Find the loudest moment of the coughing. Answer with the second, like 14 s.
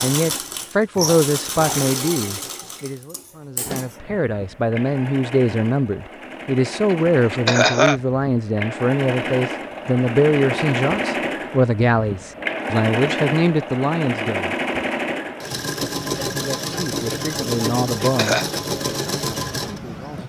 8 s.